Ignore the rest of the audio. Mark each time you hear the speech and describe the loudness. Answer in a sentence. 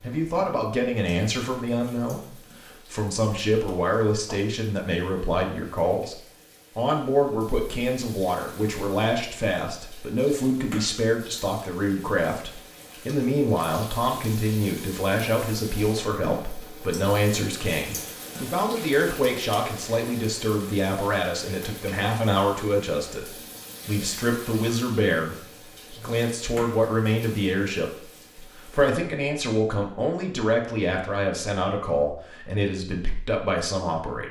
The speech can be heard from 0.0 to 34.2 s, at a steady volume.